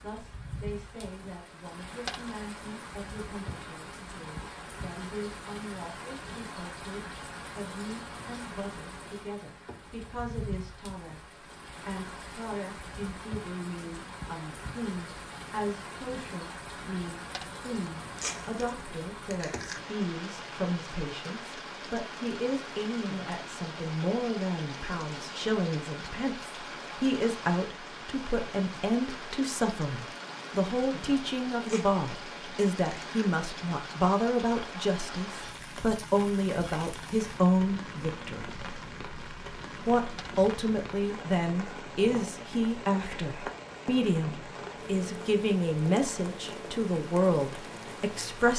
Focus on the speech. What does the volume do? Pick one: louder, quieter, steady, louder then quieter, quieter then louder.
louder.